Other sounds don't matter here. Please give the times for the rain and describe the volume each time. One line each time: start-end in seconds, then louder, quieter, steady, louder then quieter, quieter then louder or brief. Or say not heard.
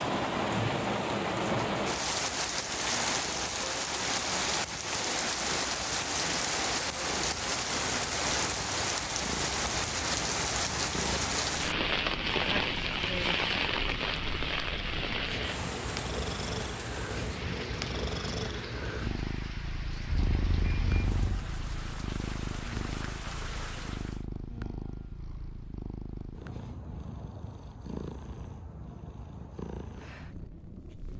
0.0-24.2 quieter.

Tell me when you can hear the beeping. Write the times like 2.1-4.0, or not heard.
20.1-21.5.